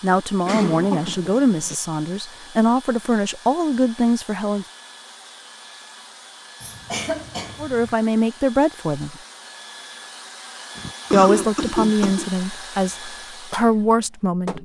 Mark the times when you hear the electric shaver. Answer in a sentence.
The electric shaver can't be heard in this clip.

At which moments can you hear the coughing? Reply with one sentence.
You can hear the coughing from 0.5 to 1.8 s, from 6.6 to 8.0 s and from 10.8 to 12.3 s.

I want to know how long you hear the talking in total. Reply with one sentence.
You can hear the talking for 10 seconds altogether.